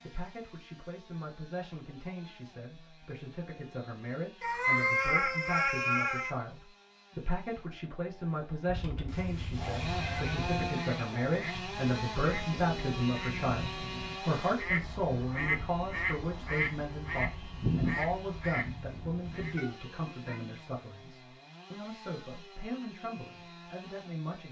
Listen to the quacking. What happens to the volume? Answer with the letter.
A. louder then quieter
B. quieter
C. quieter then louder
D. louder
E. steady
D.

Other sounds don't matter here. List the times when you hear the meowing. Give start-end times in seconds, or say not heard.
4.4-6.3, 8.7-10.7, 19.6-20.4.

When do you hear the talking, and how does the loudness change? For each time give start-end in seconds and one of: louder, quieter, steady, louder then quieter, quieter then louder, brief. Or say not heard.
0.0-24.4 louder then quieter.